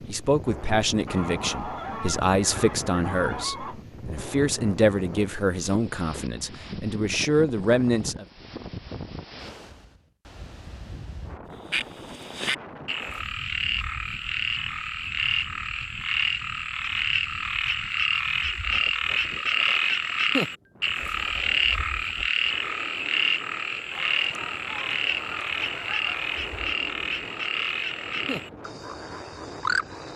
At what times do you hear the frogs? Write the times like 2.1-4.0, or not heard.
11.7-30.1.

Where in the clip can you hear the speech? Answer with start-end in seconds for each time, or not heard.
0.1-8.2.